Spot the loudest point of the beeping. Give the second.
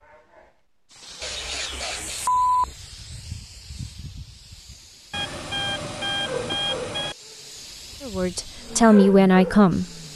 2 s.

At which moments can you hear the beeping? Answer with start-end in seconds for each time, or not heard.
1.2-2.8, 5.1-7.2.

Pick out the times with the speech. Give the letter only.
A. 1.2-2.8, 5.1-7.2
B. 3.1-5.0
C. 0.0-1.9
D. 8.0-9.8
D.